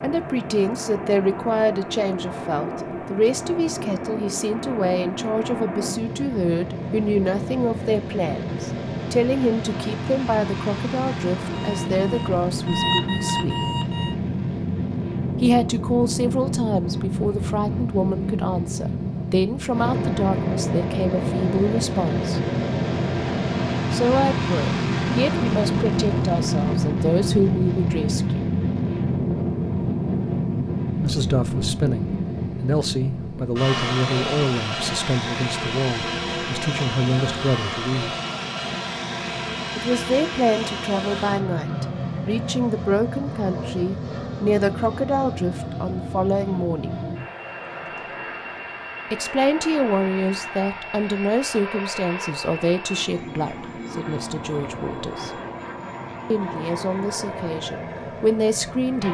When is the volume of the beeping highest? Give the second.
13 s.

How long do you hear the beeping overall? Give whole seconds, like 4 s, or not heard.
3 s.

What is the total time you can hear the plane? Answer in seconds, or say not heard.
59 s.